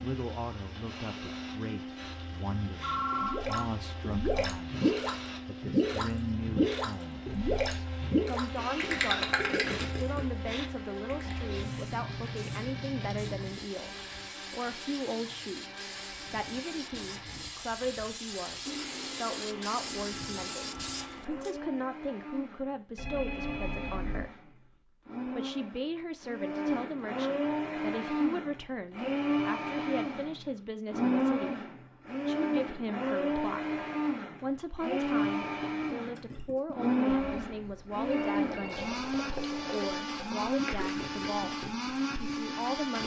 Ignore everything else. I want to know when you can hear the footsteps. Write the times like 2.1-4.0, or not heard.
not heard.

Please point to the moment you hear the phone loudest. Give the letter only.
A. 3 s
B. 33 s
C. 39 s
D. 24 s
A.